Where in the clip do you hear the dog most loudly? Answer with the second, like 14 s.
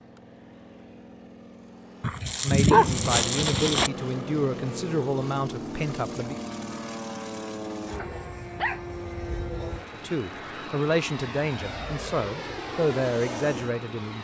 3 s.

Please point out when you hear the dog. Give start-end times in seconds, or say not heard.
2.0-3.9, 8.0-9.8.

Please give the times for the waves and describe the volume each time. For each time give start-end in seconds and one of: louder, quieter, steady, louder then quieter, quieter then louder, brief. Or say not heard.
not heard.